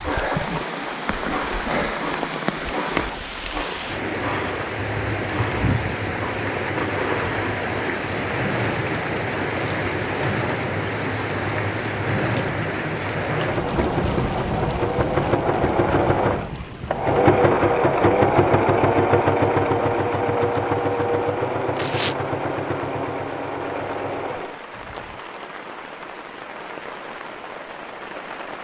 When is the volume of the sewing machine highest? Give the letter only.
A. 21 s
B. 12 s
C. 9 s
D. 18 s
D.